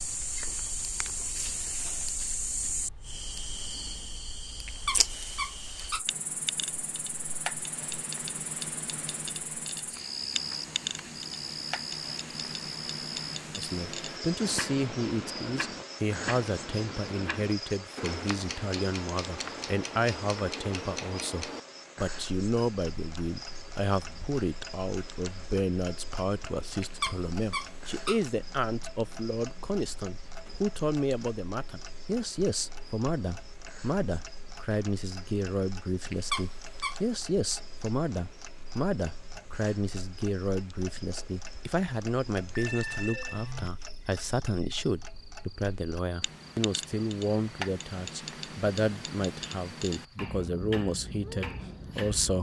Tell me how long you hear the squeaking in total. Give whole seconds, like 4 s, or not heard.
4 s.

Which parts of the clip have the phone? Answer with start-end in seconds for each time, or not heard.
42.5-43.9.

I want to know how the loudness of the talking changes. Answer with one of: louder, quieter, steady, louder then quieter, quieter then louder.
steady.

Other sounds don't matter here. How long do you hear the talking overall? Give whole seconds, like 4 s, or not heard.
39 s.